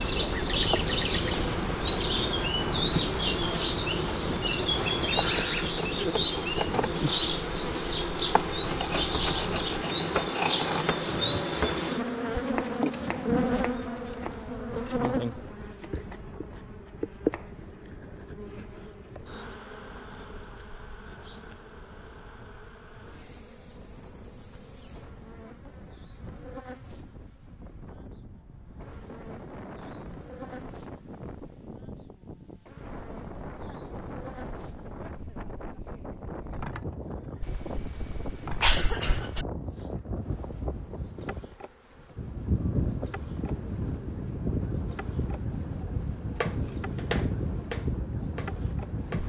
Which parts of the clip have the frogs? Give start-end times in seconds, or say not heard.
not heard.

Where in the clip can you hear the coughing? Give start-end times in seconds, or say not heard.
37.4-39.5.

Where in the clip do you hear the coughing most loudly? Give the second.
39 s.